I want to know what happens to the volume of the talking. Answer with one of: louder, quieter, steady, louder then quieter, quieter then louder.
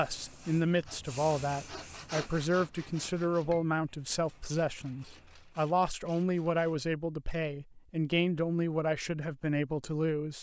steady.